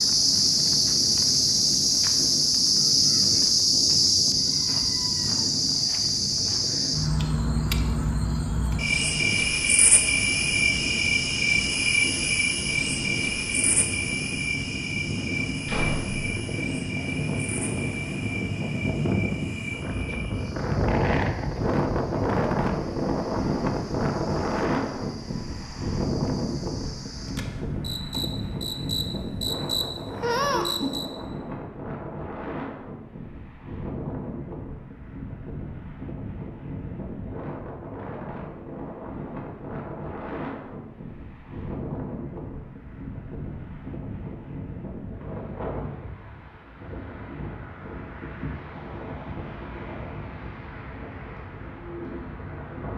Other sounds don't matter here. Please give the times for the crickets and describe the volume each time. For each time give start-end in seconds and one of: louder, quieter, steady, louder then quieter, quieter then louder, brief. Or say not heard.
0.0-31.1 quieter then louder.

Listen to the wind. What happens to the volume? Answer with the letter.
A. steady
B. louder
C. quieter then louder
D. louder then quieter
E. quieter
D.